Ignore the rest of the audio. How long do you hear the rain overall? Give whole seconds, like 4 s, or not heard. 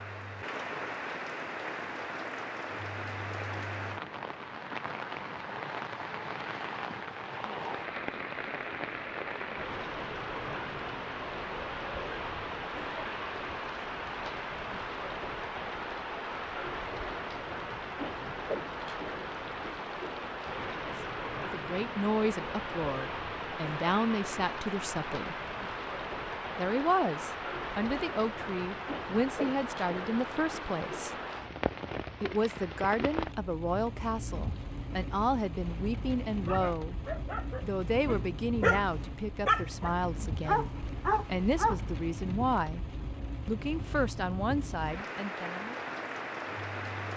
47 s.